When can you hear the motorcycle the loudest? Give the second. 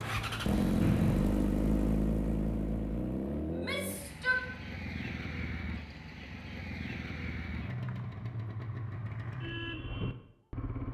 1 s.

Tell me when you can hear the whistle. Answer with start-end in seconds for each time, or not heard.
0.8-1.4.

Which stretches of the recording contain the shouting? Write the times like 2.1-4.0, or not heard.
3.5-4.4.